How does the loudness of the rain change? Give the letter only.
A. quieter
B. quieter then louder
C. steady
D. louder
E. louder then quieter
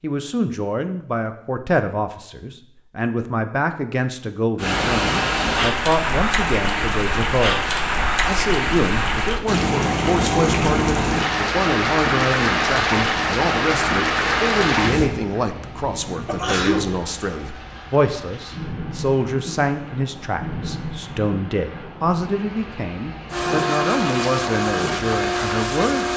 A.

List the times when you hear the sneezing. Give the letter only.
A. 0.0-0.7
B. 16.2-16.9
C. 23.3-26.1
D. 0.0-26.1
B.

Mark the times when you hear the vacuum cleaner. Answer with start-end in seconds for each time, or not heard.
23.3-26.1.